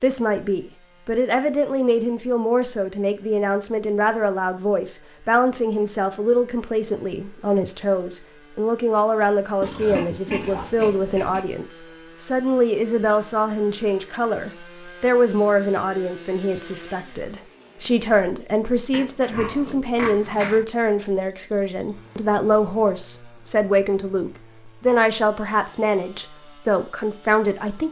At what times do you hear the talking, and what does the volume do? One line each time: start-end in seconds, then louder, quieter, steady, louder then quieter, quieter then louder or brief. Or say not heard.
0.0-27.8 steady.